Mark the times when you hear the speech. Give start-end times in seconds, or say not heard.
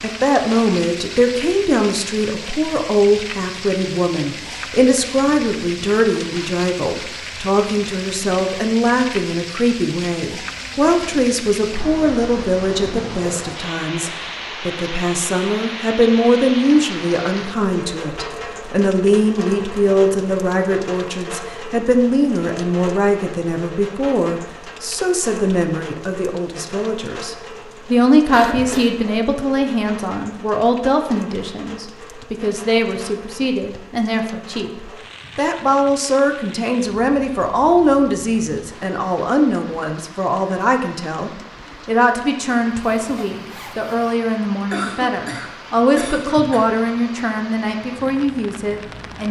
0.0-49.2.